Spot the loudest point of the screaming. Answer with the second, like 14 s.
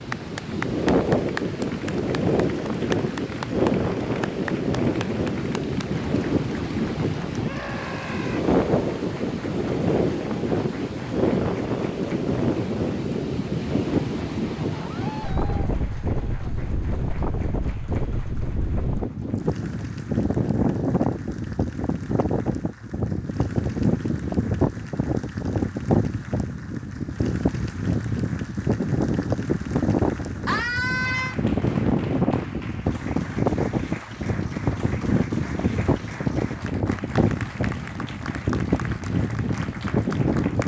31 s.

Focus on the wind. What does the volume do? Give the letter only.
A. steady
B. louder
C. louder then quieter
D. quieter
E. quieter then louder
A.